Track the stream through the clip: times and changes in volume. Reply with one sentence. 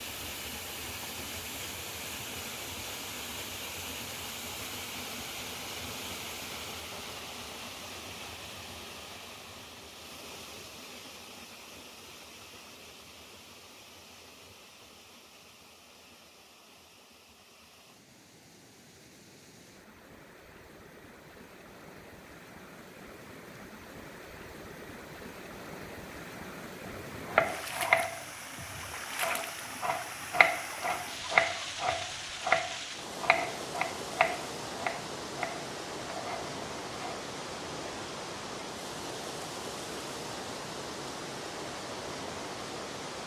The stream can be heard from 0.0 to 43.2 s, getting quieter then louder.